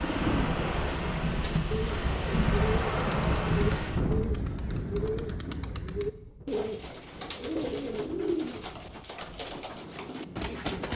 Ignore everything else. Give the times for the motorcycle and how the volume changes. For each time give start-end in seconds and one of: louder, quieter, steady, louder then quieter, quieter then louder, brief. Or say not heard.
not heard.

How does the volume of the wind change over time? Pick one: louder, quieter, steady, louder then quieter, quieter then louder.
quieter.